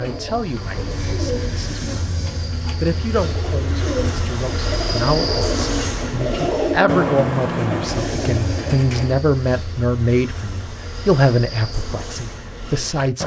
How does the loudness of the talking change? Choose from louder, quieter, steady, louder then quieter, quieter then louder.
louder.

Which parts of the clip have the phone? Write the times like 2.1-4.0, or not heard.
not heard.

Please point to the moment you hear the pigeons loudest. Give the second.
7 s.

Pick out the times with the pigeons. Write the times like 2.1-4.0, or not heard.
0.0-9.2.